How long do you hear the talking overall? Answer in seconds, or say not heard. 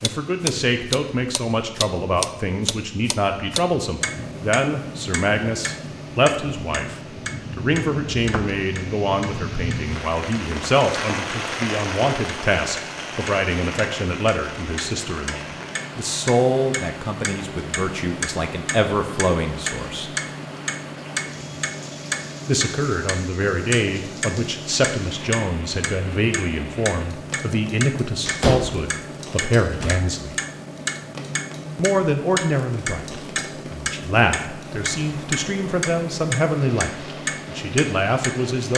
35 s.